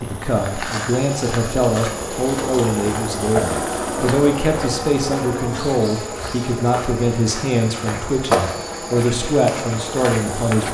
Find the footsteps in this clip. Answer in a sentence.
You can hear the footsteps from 0.2 to 10.6 s.